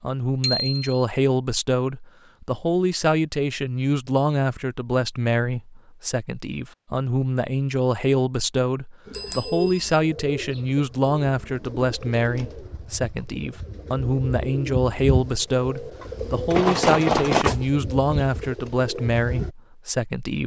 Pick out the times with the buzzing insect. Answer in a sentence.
The buzzing insect can't be heard in this clip.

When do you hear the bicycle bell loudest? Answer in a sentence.
The loudest moment of the bicycle bell is at 17 seconds.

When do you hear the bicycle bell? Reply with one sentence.
The bicycle bell can be heard from 0.4 to 1.0 s, from 9.1 to 9.9 s and from 16.5 to 17.6 s.